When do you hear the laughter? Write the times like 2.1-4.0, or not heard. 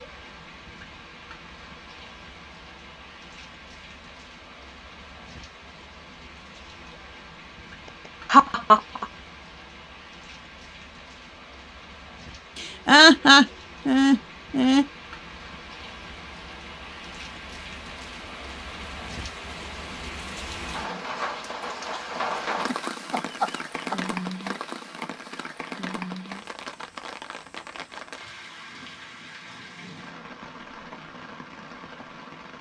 8.2-9.1, 12.6-14.8, 22.6-24.1.